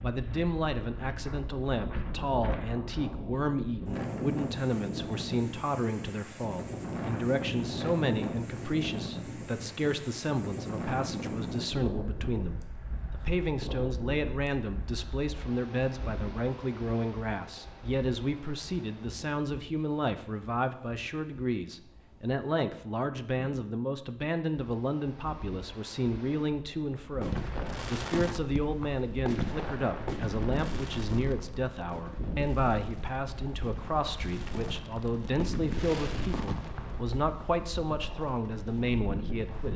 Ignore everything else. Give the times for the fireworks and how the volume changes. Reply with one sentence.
You can hear the fireworks from 27.1 to 37.2 s, getting quieter then louder.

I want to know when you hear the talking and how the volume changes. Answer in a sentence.
The talking can be heard from 0.0 to 39.7 s, at a steady volume.